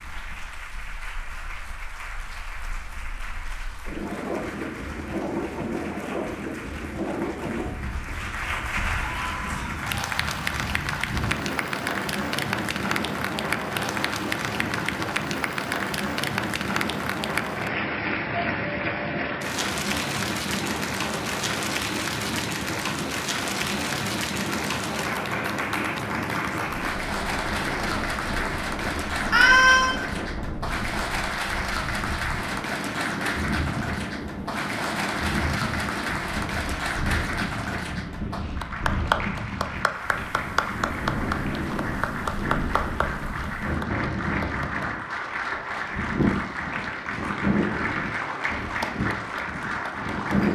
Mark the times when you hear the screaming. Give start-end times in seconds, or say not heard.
9.0-9.8, 29.3-29.9.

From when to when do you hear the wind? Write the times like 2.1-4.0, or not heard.
0.0-50.5.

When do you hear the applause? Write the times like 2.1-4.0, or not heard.
0.0-50.5.